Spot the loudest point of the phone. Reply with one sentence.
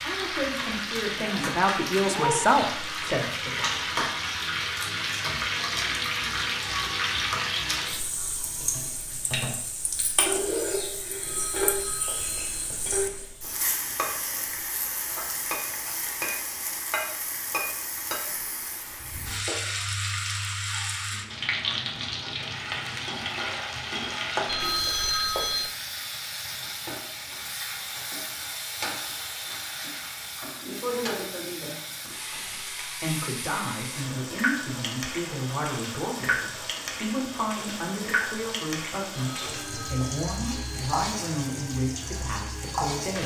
The volume of the phone peaks at 25 seconds.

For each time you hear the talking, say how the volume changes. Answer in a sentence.
The talking can be heard from 0.0 to 4.0 s, getting louder then quieter; and from 32.5 to 43.2 s, at a steady volume.